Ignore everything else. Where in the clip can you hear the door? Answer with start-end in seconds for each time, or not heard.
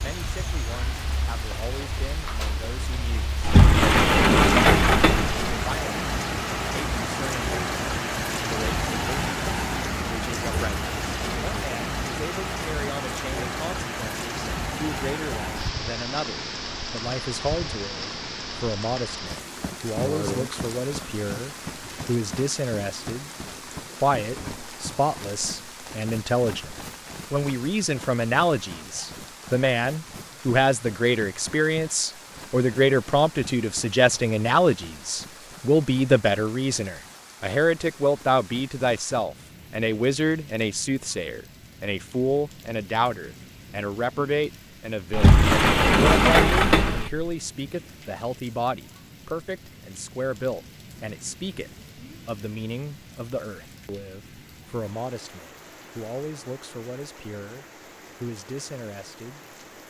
3.4-5.5, 45.1-47.3.